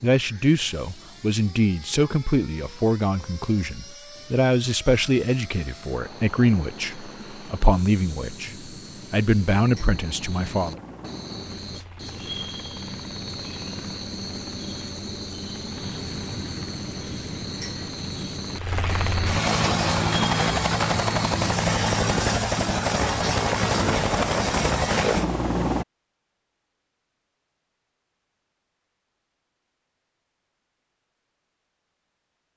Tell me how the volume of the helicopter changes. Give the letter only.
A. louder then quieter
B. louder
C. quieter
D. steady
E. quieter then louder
B.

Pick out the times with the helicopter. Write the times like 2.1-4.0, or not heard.
0.1-25.9.